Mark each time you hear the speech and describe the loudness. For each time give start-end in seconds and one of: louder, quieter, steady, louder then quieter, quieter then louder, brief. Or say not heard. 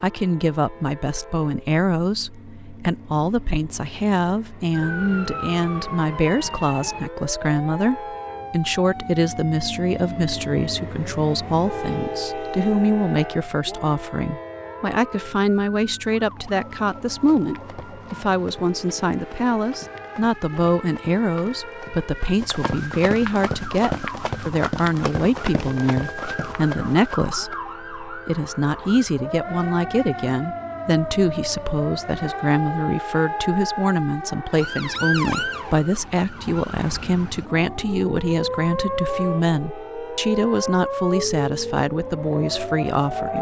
0.0-43.3 steady.